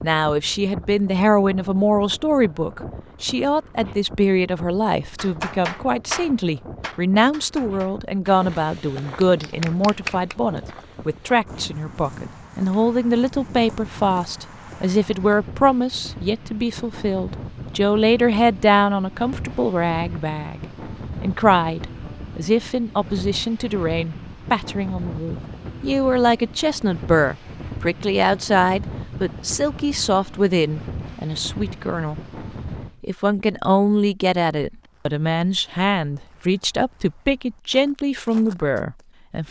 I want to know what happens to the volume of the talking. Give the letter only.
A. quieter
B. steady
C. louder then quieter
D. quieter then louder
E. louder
B.